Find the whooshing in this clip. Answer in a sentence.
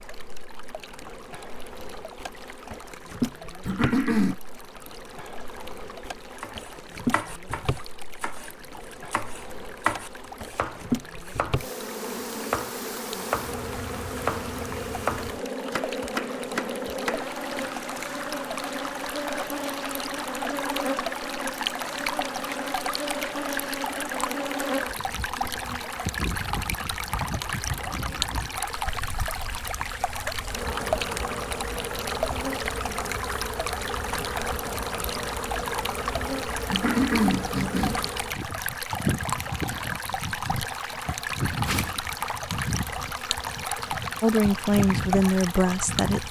The whooshing can be heard from 41.6 to 42.0 s.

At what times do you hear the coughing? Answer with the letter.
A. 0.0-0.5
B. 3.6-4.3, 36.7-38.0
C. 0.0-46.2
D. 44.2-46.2
B.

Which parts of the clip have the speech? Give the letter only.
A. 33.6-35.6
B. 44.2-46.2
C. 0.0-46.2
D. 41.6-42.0
B.